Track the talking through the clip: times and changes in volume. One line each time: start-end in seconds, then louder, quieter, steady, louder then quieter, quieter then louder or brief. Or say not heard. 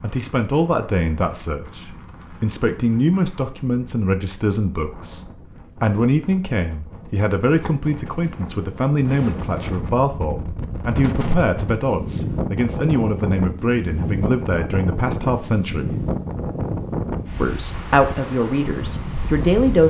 0.0-15.9 steady
17.4-19.8 brief.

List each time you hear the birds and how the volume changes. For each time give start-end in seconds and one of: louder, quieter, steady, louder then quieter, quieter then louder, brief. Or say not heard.
not heard.